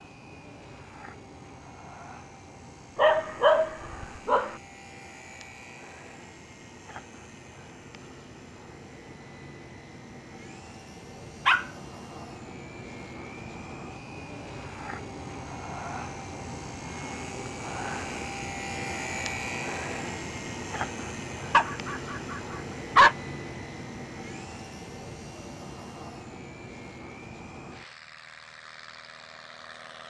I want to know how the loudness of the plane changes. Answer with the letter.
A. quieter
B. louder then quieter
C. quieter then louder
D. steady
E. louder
B.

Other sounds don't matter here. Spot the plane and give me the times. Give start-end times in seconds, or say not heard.
0.0-30.0.